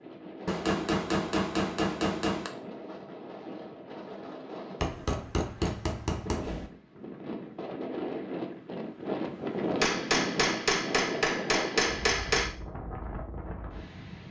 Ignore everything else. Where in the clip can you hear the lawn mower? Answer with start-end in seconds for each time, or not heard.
not heard.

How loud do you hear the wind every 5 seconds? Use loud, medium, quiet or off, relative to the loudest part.
medium, loud, loud.